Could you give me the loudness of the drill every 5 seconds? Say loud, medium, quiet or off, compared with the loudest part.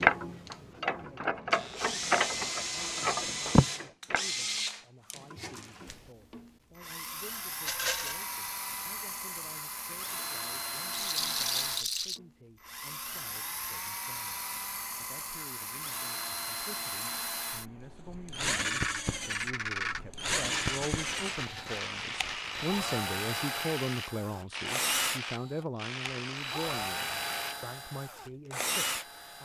loud, medium, loud, loud, loud, loud.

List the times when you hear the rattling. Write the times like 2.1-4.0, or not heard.
7.7-8.2, 10.9-12.2, 20.4-23.0.